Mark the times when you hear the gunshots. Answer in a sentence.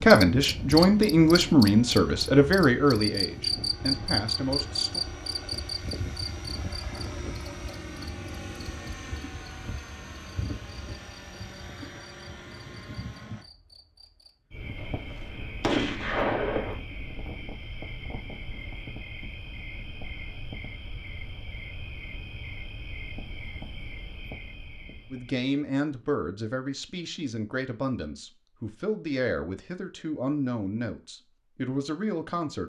You can hear the gunshots from 14.8 to 16.8 s.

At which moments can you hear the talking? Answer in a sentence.
You can hear the talking from 0.0 to 5.0 s and from 25.1 to 32.6 s.